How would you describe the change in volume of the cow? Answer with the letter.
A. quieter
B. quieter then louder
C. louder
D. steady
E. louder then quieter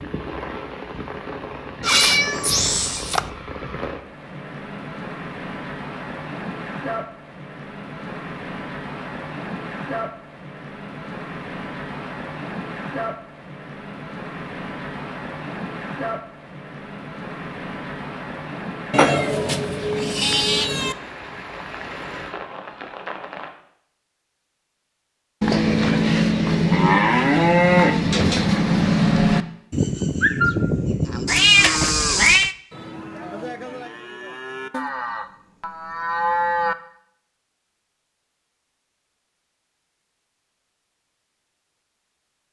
B.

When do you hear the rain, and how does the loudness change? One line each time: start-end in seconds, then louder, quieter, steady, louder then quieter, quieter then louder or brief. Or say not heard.
0.0-23.5 steady.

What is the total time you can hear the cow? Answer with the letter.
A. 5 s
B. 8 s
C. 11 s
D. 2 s
C.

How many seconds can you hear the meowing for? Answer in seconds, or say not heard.
5 s.